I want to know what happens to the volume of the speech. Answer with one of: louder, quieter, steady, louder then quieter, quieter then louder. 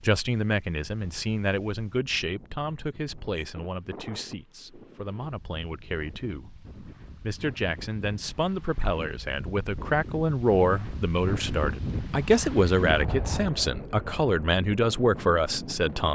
quieter then louder.